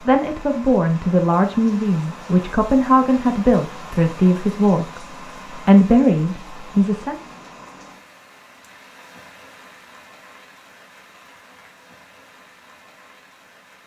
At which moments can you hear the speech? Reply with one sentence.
You can hear the speech from 0.1 to 7.2 s.